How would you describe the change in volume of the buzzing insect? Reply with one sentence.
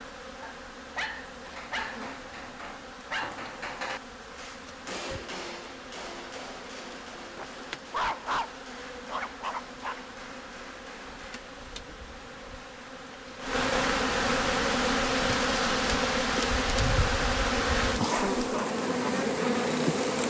The loudness of the buzzing insect goes up.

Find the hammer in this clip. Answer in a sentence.
The hammer can be heard from 1.4 to 11.4 s.